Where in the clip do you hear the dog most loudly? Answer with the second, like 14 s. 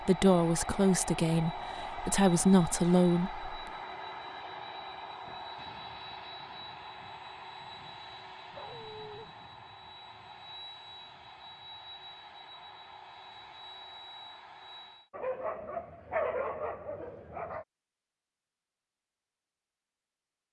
16 s.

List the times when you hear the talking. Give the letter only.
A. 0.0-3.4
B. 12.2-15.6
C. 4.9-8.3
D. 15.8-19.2
A.